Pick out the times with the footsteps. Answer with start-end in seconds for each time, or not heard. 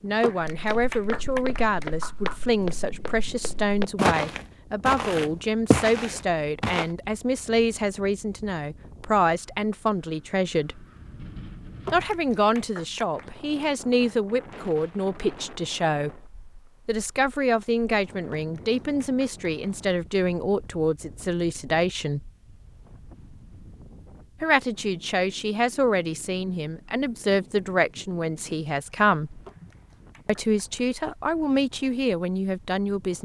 0.6-6.8.